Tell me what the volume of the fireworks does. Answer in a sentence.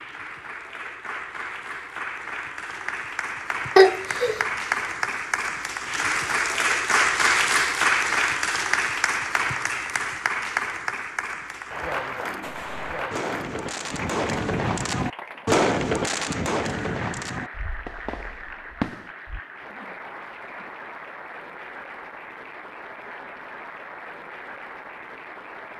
The loudness of the fireworks goes up, then down.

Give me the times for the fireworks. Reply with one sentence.
You can hear the fireworks from 12.4 to 19.4 s.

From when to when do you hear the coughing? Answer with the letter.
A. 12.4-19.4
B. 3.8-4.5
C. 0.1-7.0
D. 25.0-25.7
B.